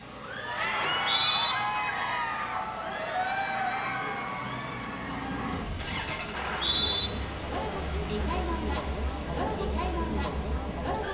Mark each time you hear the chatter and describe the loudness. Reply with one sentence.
The chatter can be heard from 0.1 to 11.0 s, getting quieter then louder.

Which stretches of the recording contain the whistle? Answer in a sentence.
The whistle can be heard from 0.8 to 1.6 s and from 6.3 to 7.1 s.